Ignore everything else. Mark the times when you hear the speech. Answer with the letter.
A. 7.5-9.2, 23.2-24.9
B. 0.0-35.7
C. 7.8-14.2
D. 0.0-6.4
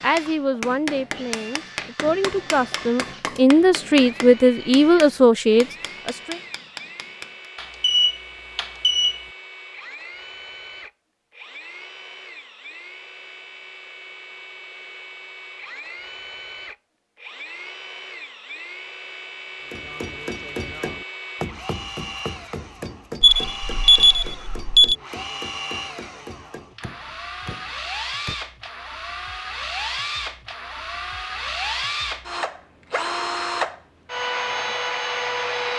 D.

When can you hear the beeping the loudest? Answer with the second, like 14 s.
24 s.